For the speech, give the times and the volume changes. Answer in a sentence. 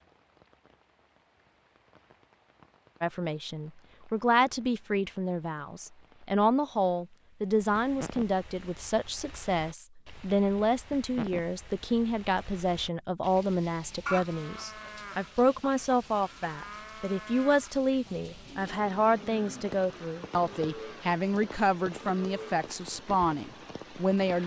You can hear the speech from 3.0 to 24.4 s, at a steady volume.